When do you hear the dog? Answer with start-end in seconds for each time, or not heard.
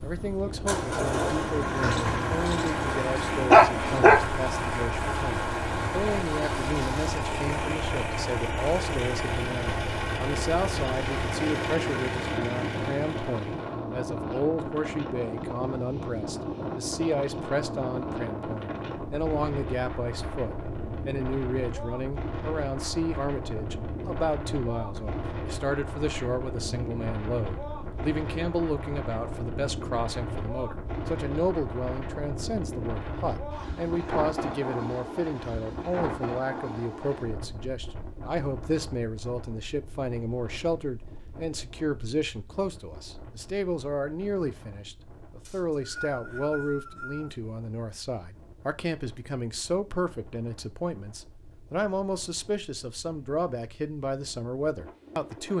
1.8-4.2.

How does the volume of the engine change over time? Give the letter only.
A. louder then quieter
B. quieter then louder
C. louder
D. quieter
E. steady
E.